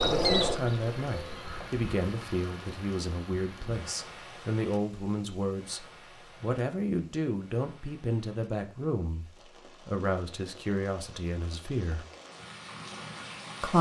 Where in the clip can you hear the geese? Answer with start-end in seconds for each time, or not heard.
0.0-1.7.